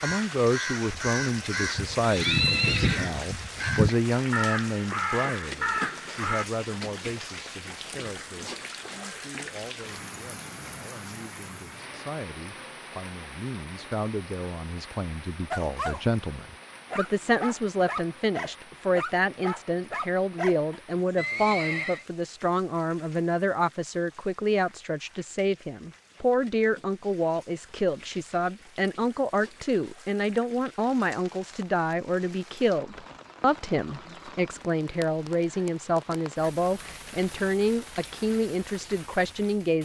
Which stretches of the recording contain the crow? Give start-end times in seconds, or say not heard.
0.0-6.5.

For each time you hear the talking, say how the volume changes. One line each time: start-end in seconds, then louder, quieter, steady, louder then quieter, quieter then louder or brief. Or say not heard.
0.0-39.8 quieter then louder.